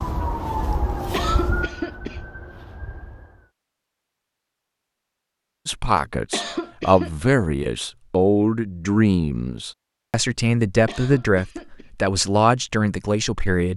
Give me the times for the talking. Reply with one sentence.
You can hear the talking from 5.7 to 13.7 s.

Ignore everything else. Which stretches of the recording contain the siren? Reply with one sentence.
The siren can be heard from 0.0 to 3.5 s.